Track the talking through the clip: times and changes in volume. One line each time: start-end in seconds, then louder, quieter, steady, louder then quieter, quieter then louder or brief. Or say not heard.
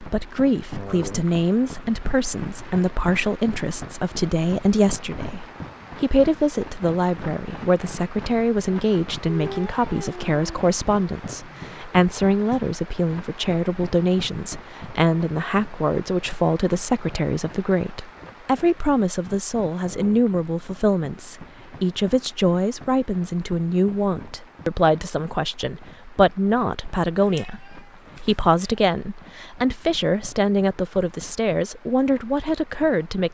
0.0-33.2 steady.